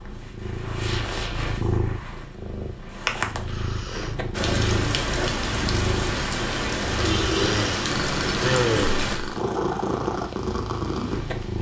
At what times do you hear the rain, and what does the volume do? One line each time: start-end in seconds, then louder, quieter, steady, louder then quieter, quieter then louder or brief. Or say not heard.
4.3-11.5 quieter.